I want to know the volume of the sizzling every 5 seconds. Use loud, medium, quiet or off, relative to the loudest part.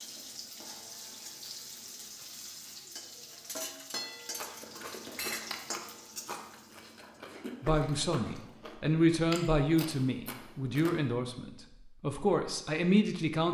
loud, loud, off.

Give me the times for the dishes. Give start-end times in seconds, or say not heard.
3.5-5.5.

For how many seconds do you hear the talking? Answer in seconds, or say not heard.
6 s.